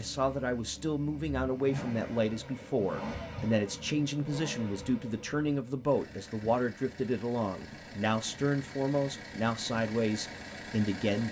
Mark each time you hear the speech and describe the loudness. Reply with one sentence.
You can hear the speech from 0.0 to 11.2 s, at a steady volume.